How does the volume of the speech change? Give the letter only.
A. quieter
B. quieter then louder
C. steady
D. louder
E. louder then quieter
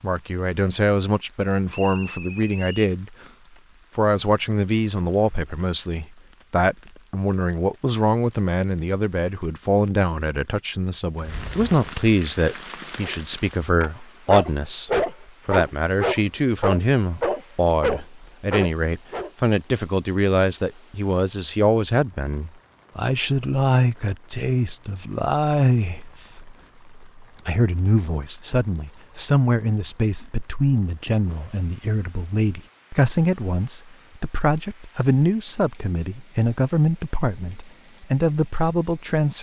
C.